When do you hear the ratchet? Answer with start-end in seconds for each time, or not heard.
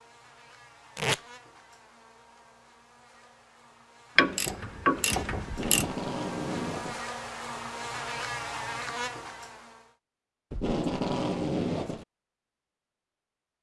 4.2-5.9.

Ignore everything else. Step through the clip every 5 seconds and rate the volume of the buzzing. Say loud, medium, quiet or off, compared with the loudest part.
quiet, loud, off.